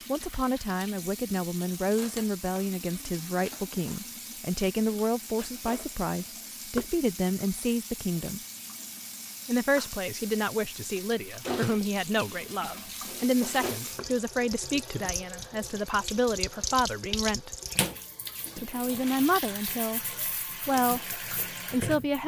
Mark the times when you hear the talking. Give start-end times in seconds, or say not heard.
0.1-8.4, 9.4-17.5, 18.6-22.2.